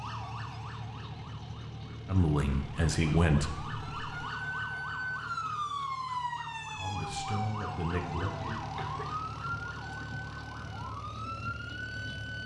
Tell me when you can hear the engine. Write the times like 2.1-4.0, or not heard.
0.0-12.4.